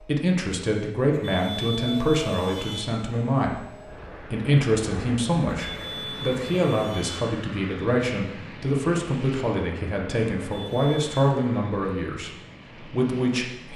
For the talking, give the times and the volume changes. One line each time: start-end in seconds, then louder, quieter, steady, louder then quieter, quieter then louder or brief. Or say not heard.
0.0-13.7 steady.